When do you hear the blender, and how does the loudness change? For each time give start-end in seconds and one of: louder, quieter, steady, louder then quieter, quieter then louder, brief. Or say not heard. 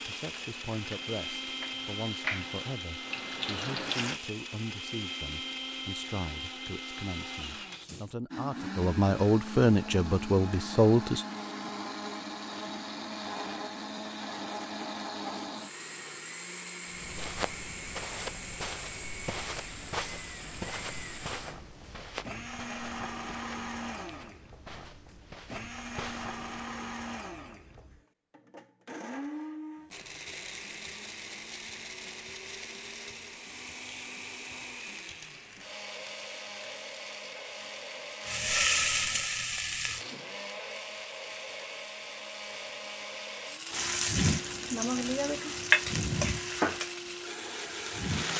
0.0-48.3 steady.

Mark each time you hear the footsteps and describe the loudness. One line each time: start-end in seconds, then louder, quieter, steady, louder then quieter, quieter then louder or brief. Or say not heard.
16.9-26.4 quieter.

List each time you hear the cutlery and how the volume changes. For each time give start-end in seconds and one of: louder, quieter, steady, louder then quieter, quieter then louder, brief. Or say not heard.
not heard.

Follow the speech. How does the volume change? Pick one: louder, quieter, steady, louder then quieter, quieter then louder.
louder.